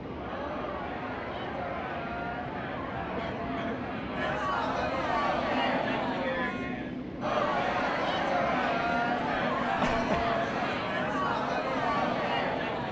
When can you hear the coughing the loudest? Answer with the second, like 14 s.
10 s.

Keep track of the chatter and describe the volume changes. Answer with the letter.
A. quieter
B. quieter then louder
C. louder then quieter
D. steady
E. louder
E.